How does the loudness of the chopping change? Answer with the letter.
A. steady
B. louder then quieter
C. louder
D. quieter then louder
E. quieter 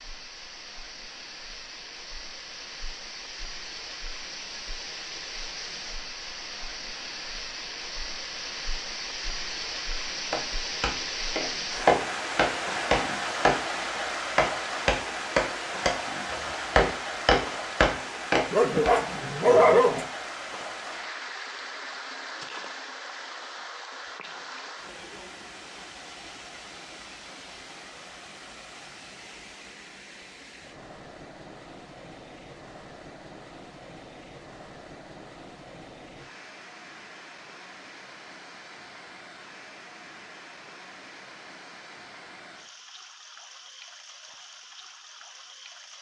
A.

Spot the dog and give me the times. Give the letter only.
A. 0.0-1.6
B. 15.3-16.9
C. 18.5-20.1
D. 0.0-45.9
C.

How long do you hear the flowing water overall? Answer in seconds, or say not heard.
46 s.